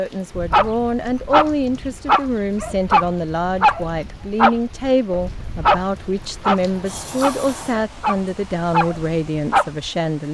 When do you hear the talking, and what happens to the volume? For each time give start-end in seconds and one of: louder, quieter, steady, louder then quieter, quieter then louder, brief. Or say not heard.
0.0-10.2 steady.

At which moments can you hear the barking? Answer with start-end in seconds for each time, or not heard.
0.3-9.9.